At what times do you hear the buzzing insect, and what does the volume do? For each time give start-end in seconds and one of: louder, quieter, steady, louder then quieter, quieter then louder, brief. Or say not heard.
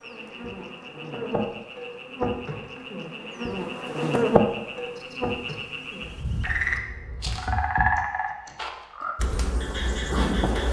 0.0-7.4 louder then quieter
9.2-10.6 brief.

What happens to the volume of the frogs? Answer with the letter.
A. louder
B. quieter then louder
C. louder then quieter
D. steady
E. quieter
C.